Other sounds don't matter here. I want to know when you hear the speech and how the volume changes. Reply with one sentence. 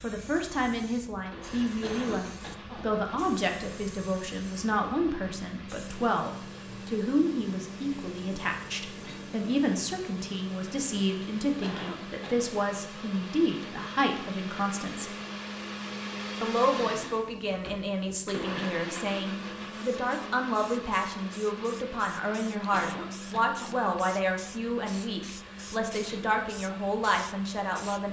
You can hear the speech from 0.0 to 15.1 s, at a steady volume; and from 16.4 to 28.0 s, at a steady volume.